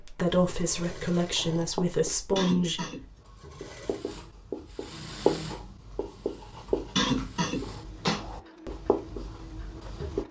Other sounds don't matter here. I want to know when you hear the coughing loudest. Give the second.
7 s.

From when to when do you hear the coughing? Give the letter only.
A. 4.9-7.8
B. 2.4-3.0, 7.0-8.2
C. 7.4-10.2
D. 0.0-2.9
B.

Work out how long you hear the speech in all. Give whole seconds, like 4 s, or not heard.
3 s.